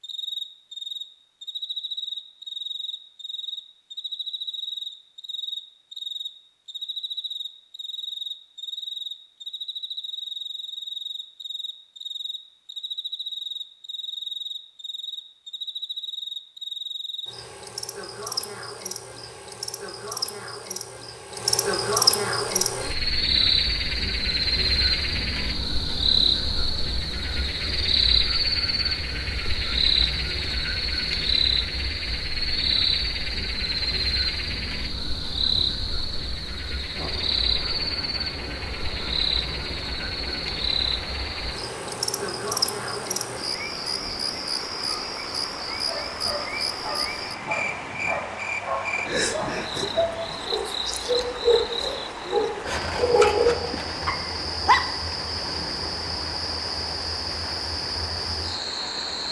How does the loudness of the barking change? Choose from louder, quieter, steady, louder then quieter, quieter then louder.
louder.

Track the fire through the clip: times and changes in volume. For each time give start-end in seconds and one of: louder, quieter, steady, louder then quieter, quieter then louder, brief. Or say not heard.
not heard.